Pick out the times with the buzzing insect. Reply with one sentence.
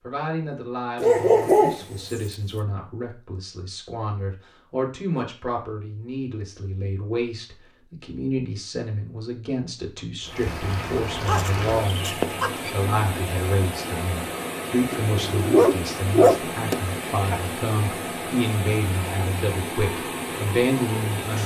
The buzzing insect can't be heard in this clip.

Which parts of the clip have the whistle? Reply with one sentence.
You can't hear the whistle here.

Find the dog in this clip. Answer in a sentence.
The dog can be heard from 1.0 to 2.1 s, from 11.2 to 12.7 s and from 14.9 to 17.4 s.